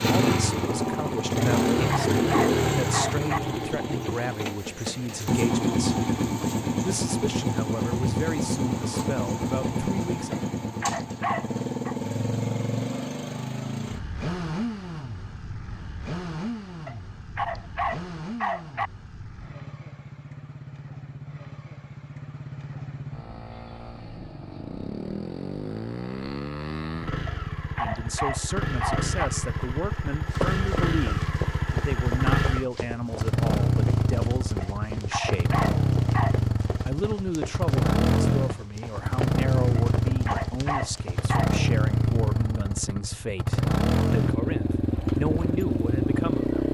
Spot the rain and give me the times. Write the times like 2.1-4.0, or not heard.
not heard.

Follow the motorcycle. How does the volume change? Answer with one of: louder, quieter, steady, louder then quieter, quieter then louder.
quieter then louder.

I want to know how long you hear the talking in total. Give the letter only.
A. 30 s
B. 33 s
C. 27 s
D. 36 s
C.